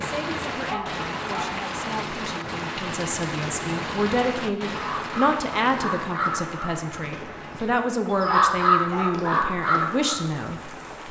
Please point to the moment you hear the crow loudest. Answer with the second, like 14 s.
9 s.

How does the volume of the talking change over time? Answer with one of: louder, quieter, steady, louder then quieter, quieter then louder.
louder.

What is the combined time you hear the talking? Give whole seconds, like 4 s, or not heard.
11 s.